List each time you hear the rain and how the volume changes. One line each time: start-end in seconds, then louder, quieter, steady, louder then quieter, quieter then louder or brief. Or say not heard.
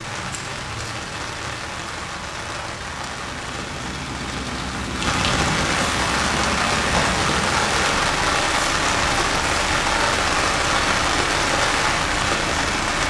0.0-13.0 louder.